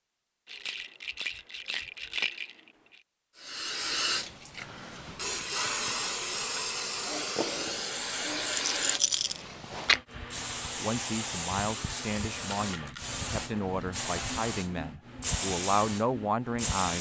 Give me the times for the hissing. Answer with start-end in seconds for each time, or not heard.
3.4-16.9.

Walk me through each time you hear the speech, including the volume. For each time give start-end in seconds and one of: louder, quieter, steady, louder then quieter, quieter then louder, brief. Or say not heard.
10.8-16.9 louder.